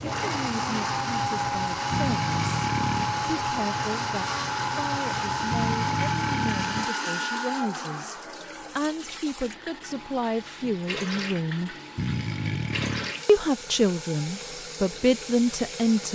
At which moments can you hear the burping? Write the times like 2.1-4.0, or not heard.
1.9-3.2, 5.5-6.9, 11.9-13.2.